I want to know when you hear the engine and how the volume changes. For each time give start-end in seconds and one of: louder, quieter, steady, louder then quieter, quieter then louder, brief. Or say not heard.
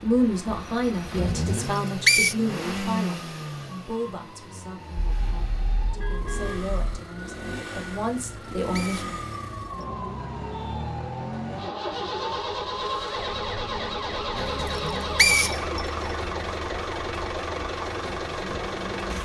0.0-19.2 quieter then louder.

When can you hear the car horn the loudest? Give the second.
6 s.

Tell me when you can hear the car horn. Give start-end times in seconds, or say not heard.
5.0-6.8.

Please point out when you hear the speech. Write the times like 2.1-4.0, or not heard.
0.0-9.2.